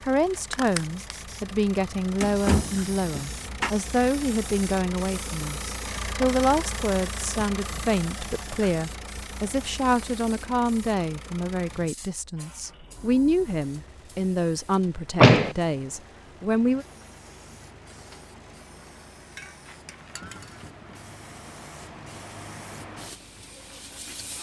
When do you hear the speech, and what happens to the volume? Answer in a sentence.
The speech can be heard from 0.0 to 16.9 s, at a steady volume.